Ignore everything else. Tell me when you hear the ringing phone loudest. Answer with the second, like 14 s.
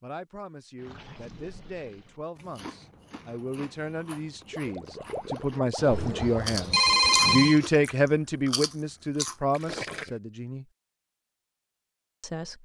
7 s.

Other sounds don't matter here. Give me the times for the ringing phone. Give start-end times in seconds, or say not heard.
5.8-7.6.